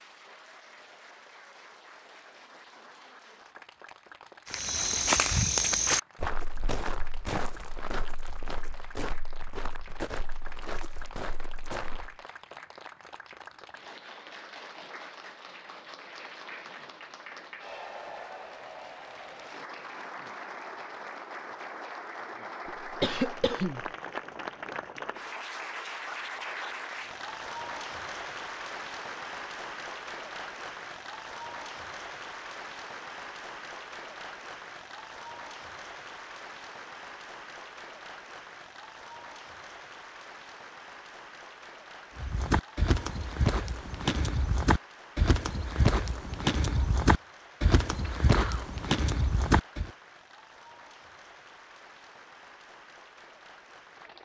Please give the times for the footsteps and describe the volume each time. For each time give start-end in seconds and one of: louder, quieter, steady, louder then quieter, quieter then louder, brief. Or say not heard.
4.5-12.2 quieter
42.1-49.9 steady.